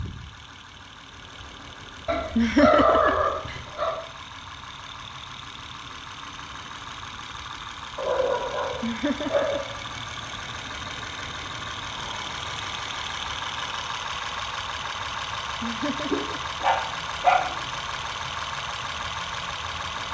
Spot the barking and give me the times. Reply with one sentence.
The barking can be heard from 2.0 to 4.0 s, from 8.0 to 9.7 s and from 16.1 to 17.5 s.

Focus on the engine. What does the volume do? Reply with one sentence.
The volume of the engine goes up.